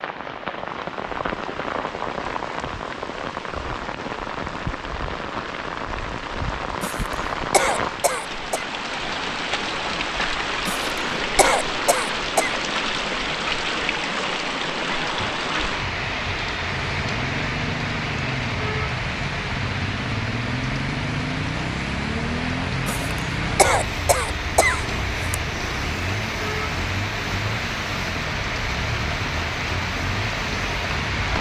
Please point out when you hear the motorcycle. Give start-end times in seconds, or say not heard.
16.6-31.3.